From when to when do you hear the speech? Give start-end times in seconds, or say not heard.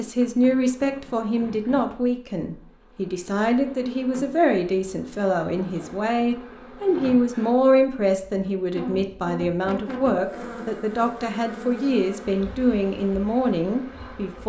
0.0-14.4.